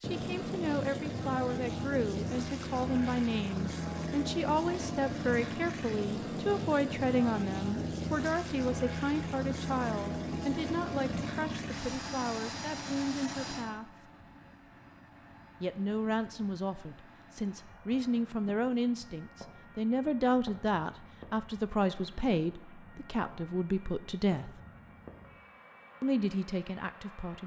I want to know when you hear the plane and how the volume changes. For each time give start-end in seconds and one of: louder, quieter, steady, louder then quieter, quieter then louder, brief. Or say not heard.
0.0-27.4 quieter.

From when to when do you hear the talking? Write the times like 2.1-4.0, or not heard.
0.0-13.9, 15.6-24.6, 26.0-27.4.